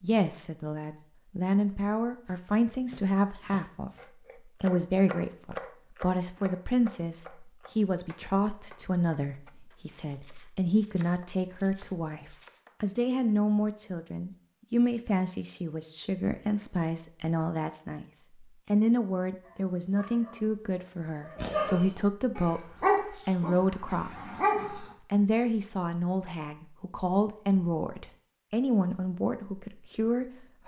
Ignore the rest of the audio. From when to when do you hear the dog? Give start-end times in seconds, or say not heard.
19.4-24.9.